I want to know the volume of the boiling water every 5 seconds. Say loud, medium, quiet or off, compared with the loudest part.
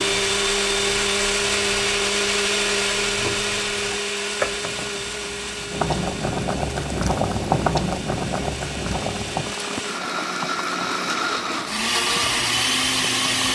medium, loud, medium.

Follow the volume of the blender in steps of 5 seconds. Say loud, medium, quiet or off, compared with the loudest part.
loud, medium, loud.